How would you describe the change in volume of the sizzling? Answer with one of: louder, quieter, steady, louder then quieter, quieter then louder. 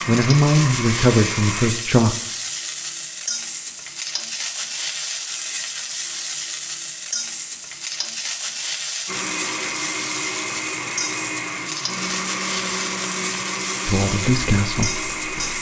steady.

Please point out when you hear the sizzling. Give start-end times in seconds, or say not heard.
0.0-15.5.